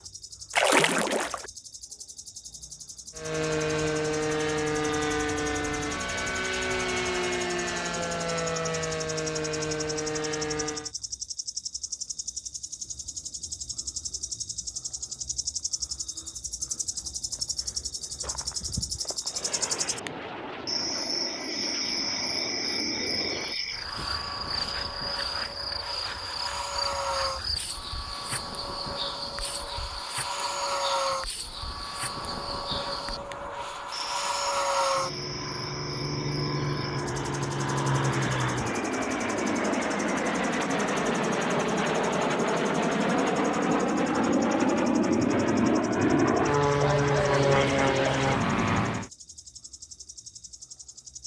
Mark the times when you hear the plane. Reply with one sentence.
The plane can be heard from 3.1 to 10.9 s and from 19.2 to 49.1 s.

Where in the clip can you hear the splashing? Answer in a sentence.
The splashing can be heard from 0.5 to 1.5 s.